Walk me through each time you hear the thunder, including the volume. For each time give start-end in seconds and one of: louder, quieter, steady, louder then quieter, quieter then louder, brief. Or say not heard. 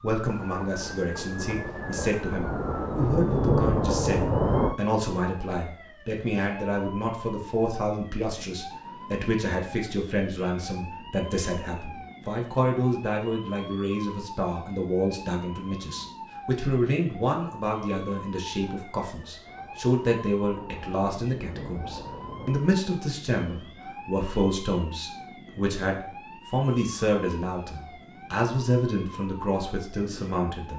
0.2-4.8 louder
18.4-22.6 louder.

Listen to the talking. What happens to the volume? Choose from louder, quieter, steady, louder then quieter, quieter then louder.
steady.